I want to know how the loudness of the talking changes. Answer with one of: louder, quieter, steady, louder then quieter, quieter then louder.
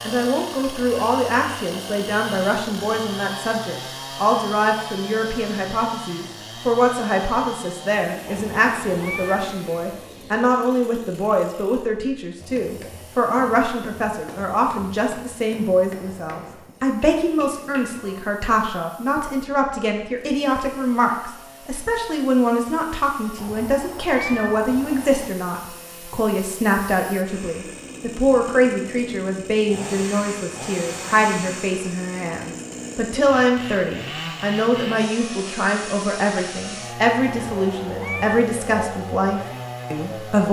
steady.